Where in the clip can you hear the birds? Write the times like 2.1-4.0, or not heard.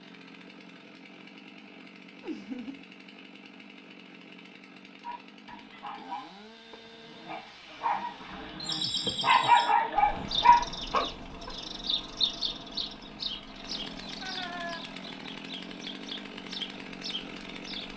8.6-17.9.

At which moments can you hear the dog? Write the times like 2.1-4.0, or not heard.
5.0-11.5.